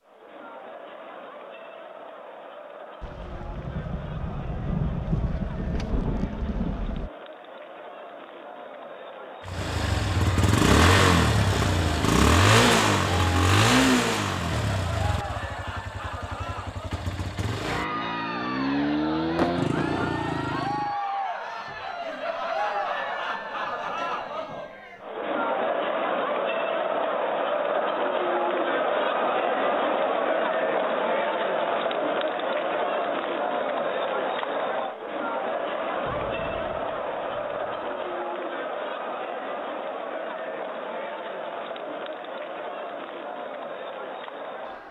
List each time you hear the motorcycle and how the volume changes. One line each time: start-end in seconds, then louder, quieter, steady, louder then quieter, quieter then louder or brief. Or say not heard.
9.4-20.9 quieter then louder.